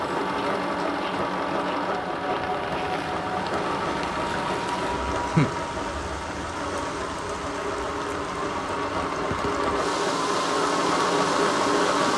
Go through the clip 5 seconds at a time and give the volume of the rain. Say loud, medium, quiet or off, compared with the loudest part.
medium, loud, loud.